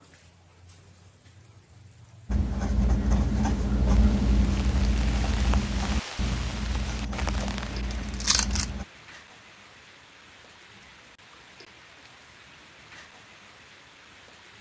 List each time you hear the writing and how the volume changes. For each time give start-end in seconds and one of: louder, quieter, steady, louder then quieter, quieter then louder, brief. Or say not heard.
2.2-8.8 quieter.